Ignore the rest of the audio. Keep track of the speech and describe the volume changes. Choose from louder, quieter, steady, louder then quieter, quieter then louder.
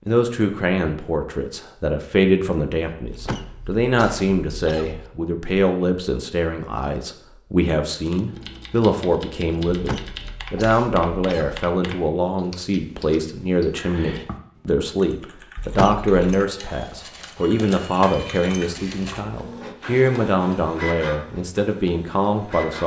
steady.